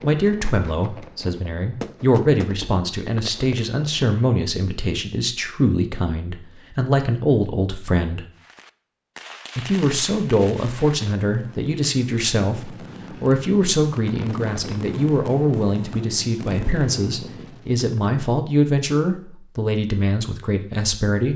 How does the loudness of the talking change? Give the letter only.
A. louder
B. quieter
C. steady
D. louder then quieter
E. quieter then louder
C.